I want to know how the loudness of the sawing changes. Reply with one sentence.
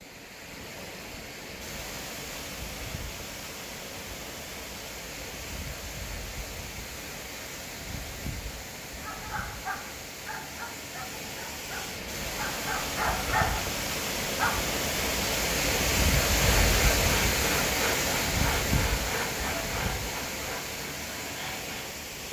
The volume of the sawing goes down.